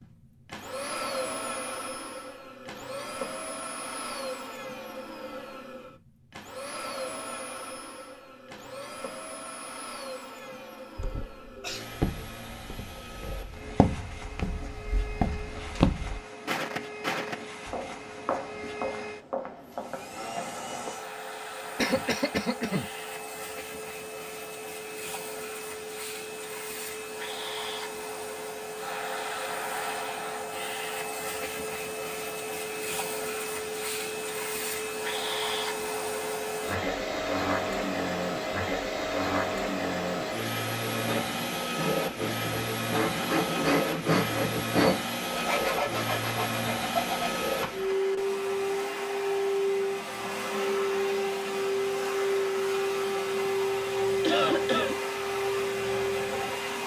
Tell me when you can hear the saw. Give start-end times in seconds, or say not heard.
40.9-48.0.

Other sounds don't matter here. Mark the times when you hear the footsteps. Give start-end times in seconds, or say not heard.
11.9-20.9.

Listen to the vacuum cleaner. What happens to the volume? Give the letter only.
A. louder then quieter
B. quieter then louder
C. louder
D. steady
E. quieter
C.